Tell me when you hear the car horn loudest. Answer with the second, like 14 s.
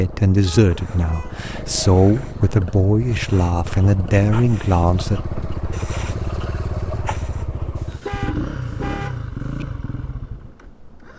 8 s.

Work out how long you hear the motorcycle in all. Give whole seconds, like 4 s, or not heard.
11 s.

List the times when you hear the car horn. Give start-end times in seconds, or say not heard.
0.5-1.5, 7.8-9.7.